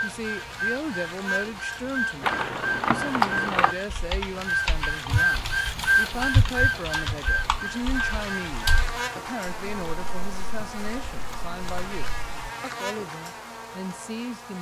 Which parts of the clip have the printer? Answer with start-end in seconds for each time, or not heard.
0.0-8.9.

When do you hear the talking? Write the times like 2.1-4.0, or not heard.
0.0-14.5.